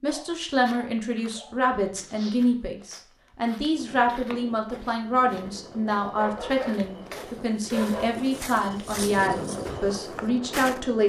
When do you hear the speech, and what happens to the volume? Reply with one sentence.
The speech can be heard from 0.0 to 11.0 s, at a steady volume.